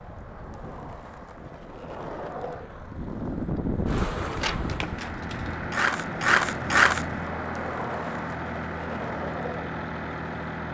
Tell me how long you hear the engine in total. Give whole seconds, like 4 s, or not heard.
11 s.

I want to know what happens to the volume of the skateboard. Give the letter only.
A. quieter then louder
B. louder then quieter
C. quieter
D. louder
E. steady
B.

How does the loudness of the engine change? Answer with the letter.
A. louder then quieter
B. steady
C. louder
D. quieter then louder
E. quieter
C.